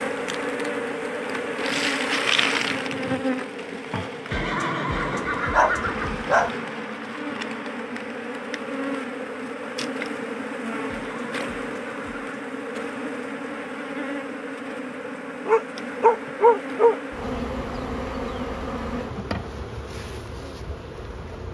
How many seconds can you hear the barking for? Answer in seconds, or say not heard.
3 s.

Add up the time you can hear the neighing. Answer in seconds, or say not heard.
3 s.